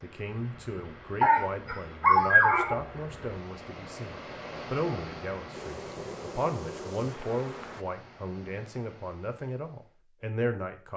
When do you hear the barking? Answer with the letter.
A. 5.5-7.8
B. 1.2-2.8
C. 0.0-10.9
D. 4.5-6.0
B.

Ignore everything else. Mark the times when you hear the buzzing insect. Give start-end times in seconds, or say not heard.
5.5-7.8.